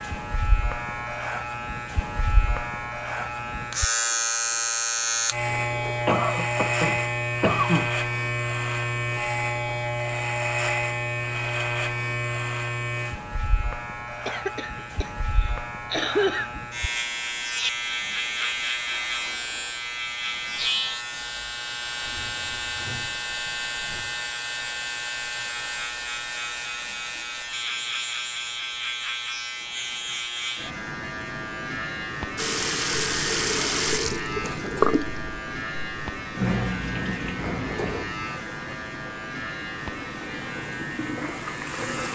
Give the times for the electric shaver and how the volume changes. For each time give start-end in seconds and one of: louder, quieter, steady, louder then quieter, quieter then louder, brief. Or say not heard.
0.0-42.1 quieter.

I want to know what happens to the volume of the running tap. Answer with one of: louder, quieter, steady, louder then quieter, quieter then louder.
quieter then louder.